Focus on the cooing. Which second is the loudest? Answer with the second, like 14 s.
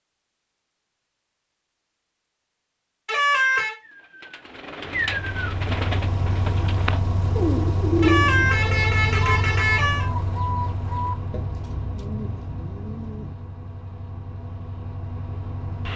8 s.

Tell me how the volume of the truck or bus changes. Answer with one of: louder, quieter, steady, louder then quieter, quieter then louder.
quieter.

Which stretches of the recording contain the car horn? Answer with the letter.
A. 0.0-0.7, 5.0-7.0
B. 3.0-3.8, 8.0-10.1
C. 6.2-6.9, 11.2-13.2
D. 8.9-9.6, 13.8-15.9
B.